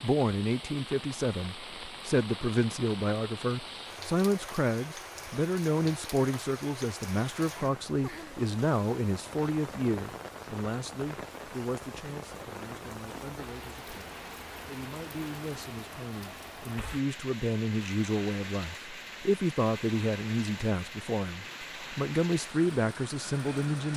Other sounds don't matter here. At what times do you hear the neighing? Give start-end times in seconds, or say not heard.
not heard.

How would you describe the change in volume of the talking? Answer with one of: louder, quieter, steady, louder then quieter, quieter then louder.
quieter then louder.